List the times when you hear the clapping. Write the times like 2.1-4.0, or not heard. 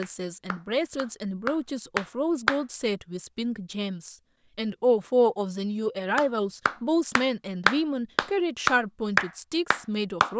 0.0-2.6, 6.2-10.3.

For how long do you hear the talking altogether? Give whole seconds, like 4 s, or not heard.
10 s.